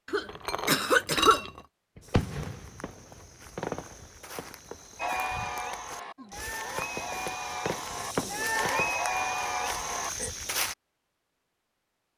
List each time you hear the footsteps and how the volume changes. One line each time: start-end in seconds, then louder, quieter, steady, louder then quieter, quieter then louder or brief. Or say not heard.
2.0-10.8 louder.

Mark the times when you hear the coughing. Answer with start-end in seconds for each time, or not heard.
0.1-1.4.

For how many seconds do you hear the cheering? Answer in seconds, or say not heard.
5 s.